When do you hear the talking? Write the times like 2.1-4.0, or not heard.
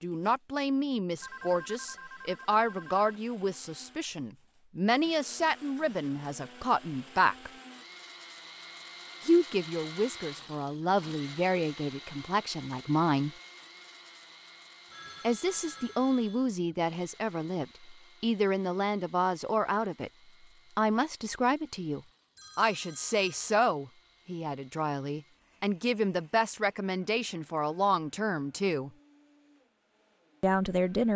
0.0-7.5, 9.2-13.3, 15.2-20.1, 20.8-28.9, 30.4-31.1.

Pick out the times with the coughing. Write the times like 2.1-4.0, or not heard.
not heard.